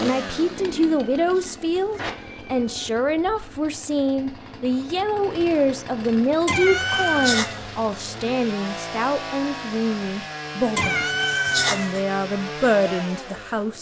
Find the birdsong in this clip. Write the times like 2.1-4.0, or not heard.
not heard.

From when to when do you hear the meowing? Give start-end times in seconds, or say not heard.
0.8-2.9, 6.5-7.6, 10.8-12.0.